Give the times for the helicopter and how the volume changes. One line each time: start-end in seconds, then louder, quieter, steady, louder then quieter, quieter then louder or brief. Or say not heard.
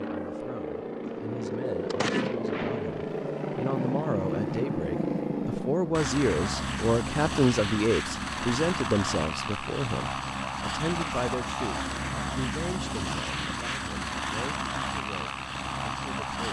0.0-16.4 steady.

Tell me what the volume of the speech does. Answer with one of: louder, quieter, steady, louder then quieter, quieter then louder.
louder then quieter.